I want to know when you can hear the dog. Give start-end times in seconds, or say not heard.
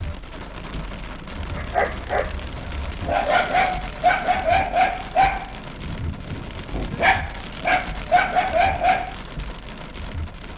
1.6-9.2.